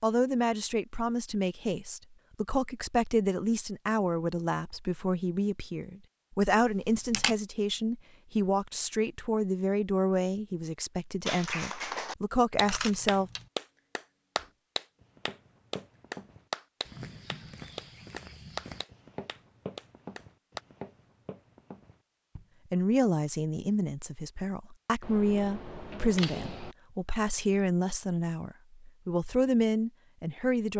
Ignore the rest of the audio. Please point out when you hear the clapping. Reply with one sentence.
The clapping can be heard from 11.2 to 20.6 s.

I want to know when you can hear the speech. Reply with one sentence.
The speech can be heard from 0.0 to 13.3 s and from 22.7 to 30.7 s.